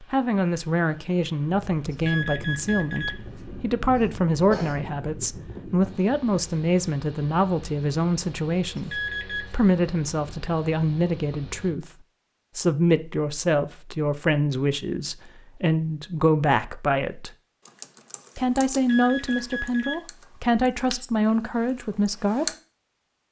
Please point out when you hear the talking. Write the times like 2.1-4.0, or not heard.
0.0-11.8, 12.6-17.3, 18.4-22.4.